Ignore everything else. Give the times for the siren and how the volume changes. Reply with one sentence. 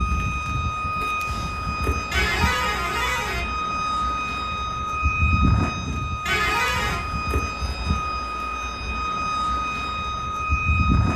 You can hear the siren from 0.0 to 11.1 s, at a steady volume.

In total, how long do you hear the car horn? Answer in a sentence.
The car horn can be heard for 2 seconds in total.